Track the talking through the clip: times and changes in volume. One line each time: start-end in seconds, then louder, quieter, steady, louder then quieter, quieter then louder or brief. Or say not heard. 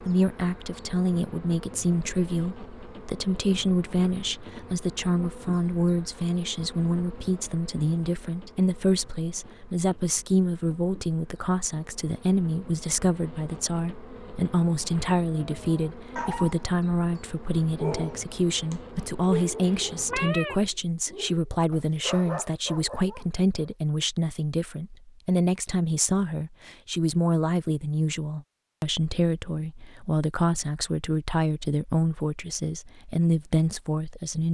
0.1-34.4 steady.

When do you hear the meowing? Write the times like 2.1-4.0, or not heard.
19.3-20.6.